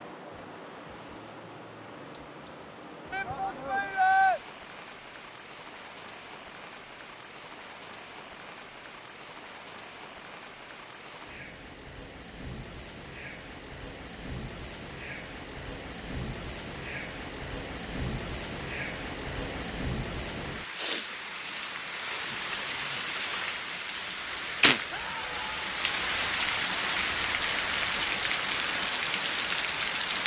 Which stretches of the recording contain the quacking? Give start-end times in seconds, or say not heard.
not heard.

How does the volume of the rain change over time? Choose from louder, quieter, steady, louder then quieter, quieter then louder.
louder.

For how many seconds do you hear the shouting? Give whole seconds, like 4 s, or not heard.
2 s.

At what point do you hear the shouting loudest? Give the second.
4 s.